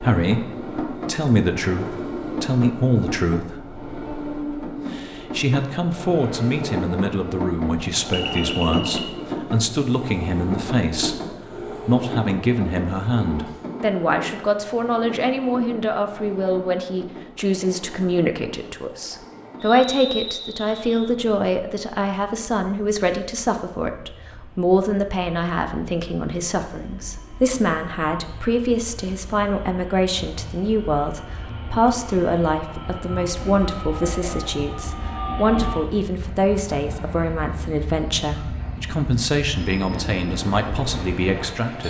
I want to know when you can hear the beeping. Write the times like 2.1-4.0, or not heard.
8.1-9.2.